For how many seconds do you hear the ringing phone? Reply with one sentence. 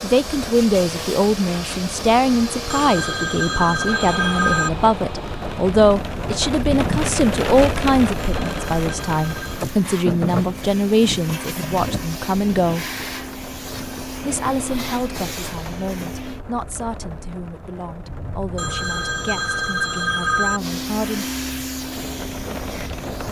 You can hear the ringing phone for 5 seconds altogether.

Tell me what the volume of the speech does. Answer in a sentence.
The loudness of the speech goes down.